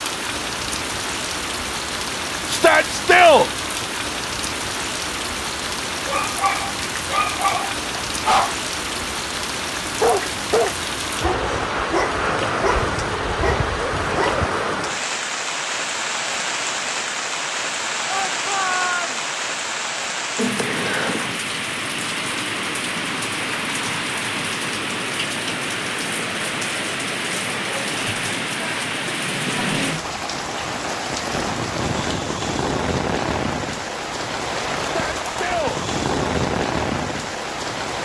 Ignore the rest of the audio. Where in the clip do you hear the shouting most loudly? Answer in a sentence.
The volume of the shouting peaks at 3 seconds.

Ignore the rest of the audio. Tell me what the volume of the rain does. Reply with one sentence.
The loudness of the rain stays about the same.